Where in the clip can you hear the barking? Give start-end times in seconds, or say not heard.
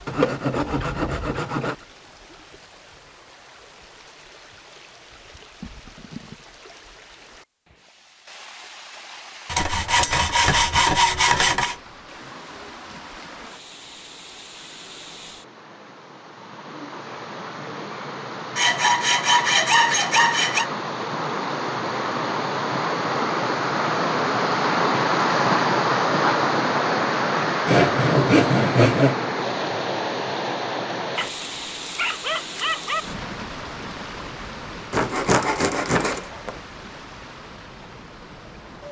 31.1-33.0.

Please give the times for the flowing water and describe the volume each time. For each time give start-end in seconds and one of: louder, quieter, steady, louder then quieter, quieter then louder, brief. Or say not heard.
0.0-38.8 louder then quieter.